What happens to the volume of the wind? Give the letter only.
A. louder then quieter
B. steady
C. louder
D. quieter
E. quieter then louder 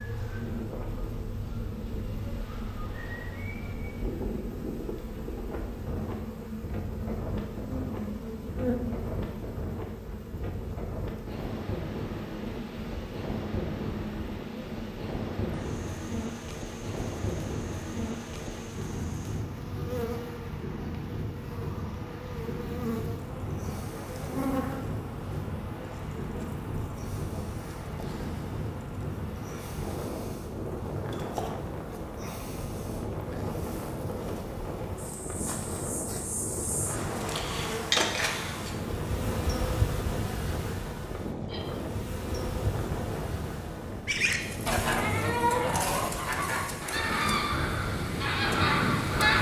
B.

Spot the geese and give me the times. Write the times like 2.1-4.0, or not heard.
44.0-49.3.